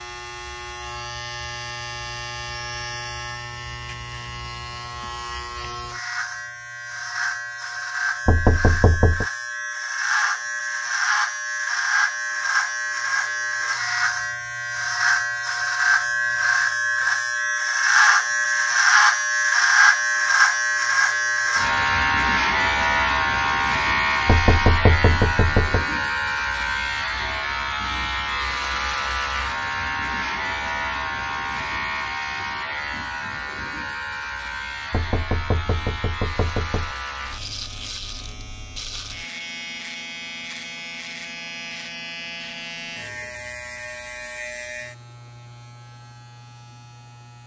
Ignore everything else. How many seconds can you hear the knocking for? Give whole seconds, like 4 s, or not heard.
5 s.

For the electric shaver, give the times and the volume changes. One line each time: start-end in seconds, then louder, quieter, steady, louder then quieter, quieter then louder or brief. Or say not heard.
0.0-47.4 louder then quieter.